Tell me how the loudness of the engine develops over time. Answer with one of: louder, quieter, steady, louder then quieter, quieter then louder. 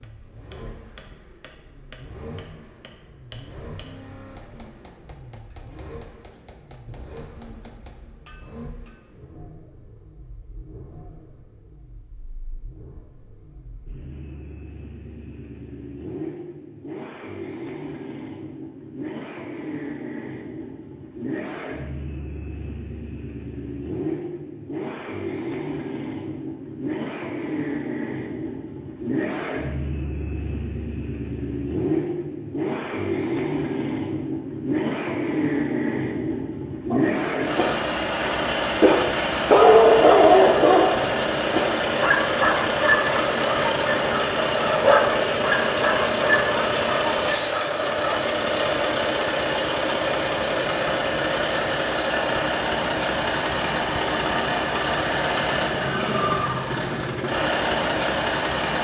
louder.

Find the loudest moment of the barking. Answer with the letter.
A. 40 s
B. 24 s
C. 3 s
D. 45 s
A.